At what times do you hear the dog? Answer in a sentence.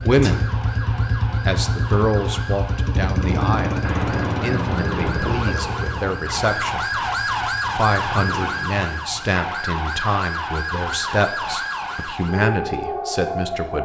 The dog can't be heard in this clip.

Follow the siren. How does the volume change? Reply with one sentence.
The loudness of the siren goes up.